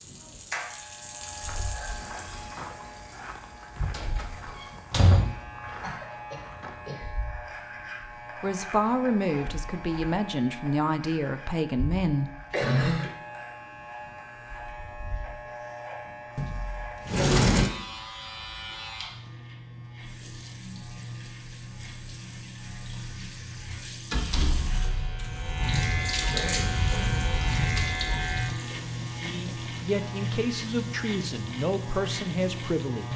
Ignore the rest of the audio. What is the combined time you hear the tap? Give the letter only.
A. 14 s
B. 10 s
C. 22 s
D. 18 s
D.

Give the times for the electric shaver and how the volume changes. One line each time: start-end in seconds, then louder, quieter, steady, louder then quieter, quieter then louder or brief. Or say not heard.
0.0-33.1 louder.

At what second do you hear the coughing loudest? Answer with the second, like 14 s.
13 s.